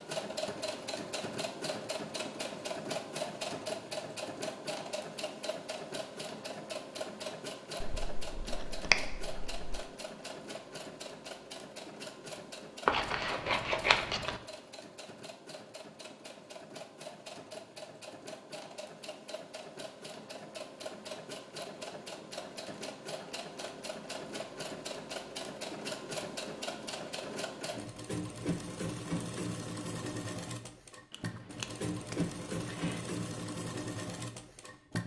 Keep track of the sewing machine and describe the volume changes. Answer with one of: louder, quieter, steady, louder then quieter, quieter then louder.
quieter then louder.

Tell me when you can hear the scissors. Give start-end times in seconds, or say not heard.
7.8-9.8, 12.8-14.4, 31.1-33.0.